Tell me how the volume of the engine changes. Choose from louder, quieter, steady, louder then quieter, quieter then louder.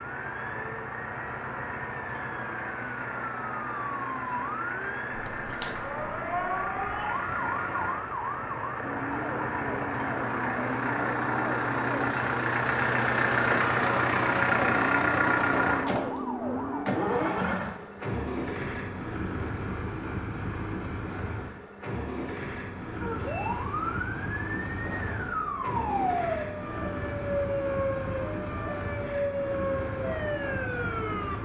louder then quieter.